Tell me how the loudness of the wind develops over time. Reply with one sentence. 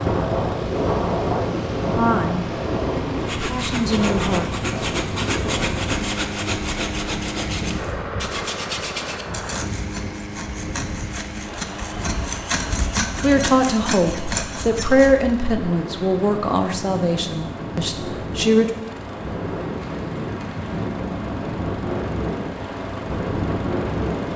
The loudness of the wind goes down, then up.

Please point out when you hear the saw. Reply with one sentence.
The saw can be heard from 3.1 to 15.2 s.